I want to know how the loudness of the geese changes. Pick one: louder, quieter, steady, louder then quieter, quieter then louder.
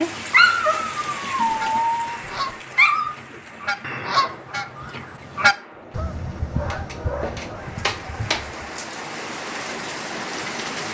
louder then quieter.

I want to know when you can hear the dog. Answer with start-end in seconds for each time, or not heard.
0.3-3.1, 6.5-8.4.